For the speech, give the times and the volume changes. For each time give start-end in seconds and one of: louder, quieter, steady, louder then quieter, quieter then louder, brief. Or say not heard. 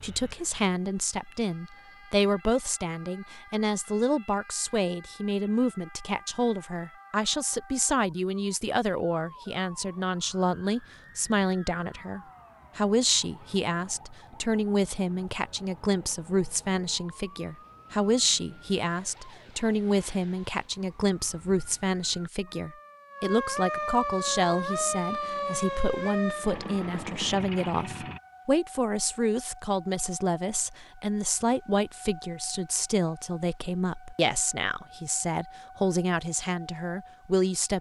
0.0-37.7 steady.